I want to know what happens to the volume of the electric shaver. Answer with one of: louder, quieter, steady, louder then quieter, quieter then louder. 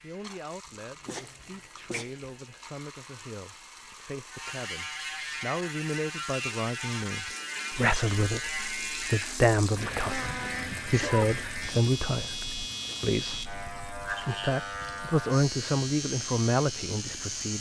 louder.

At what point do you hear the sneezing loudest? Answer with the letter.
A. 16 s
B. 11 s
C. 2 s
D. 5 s
B.